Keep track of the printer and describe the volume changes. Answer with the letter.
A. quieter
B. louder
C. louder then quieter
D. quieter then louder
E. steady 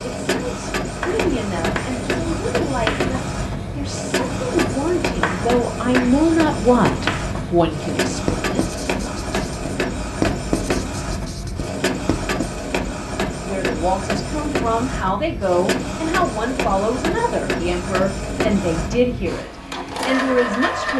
E.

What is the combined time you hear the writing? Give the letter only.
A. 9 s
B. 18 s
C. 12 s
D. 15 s
C.